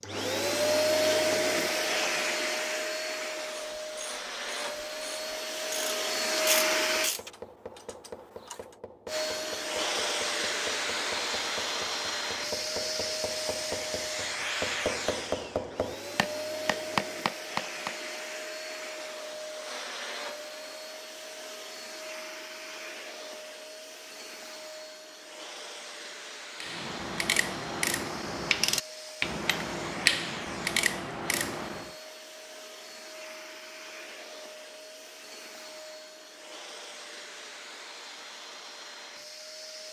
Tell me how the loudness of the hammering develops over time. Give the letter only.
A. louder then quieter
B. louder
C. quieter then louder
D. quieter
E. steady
B.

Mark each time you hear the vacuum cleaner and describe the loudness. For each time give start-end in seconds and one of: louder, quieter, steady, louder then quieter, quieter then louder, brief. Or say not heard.
0.0-7.1 quieter then louder
9.1-39.8 quieter.